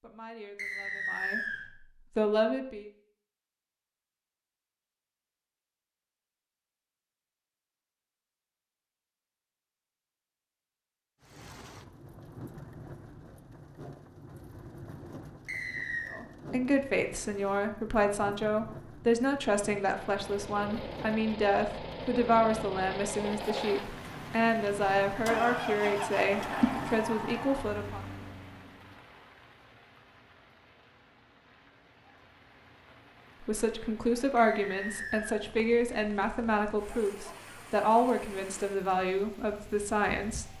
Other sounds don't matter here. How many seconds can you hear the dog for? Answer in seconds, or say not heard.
not heard.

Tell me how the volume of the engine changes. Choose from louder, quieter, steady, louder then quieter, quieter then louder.
louder then quieter.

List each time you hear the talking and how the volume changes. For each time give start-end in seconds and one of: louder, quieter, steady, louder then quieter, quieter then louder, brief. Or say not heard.
0.0-1.4 brief
2.1-2.9 brief
16.1-28.0 steady
33.4-40.5 steady.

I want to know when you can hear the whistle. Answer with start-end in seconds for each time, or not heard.
0.6-1.6, 15.4-16.2, 34.4-35.4.